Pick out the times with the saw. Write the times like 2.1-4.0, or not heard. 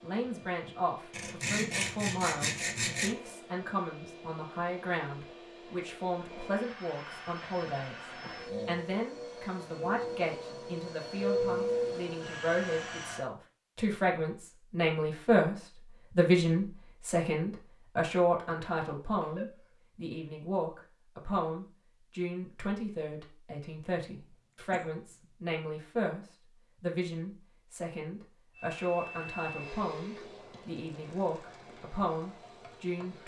1.1-3.1.